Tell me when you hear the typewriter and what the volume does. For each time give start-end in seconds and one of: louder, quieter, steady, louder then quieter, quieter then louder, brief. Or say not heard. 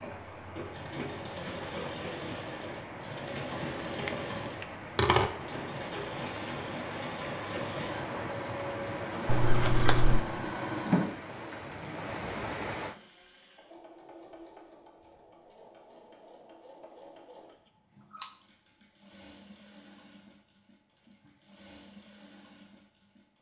not heard.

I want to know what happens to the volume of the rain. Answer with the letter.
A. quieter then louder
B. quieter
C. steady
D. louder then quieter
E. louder
E.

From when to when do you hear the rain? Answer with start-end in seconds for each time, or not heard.
0.0-12.9.